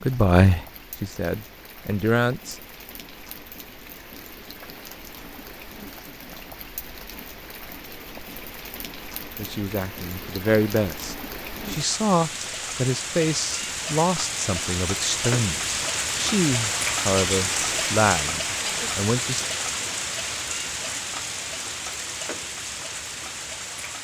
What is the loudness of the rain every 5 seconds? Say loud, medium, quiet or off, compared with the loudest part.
quiet, quiet, medium, loud, medium.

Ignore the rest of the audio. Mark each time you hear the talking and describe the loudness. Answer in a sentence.
The talking can be heard briefly from 0.0 to 2.6 s; and from 9.3 to 19.4 s, at a steady volume.